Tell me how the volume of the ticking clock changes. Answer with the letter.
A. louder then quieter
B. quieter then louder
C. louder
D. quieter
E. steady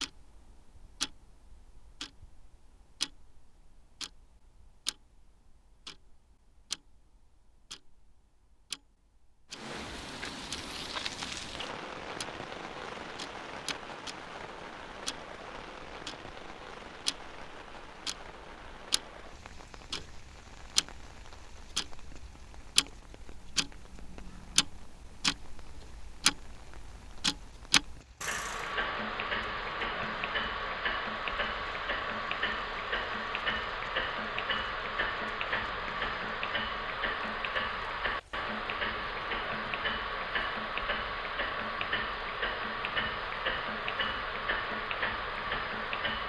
C.